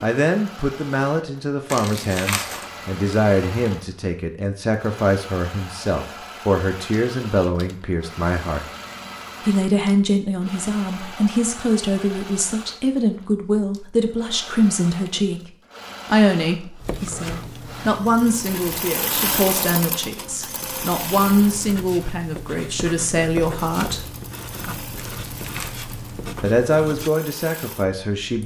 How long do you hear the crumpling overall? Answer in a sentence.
You can hear the crumpling for 2 seconds altogether.